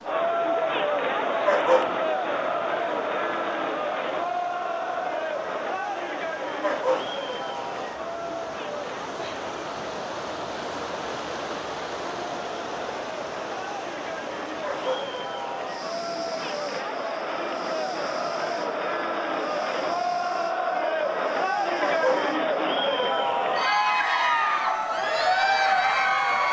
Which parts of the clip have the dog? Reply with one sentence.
You can hear the dog from 1.4 to 1.9 s, from 6.6 to 7.1 s, from 14.6 to 15.1 s and from 21.8 to 22.2 s.